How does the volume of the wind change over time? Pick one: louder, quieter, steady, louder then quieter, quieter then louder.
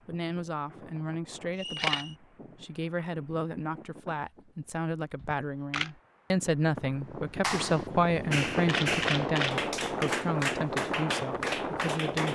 louder.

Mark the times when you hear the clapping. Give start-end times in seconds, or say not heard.
7.4-12.3.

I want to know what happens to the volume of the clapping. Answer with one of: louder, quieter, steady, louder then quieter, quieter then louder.
steady.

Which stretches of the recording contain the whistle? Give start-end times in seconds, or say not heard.
1.6-2.1.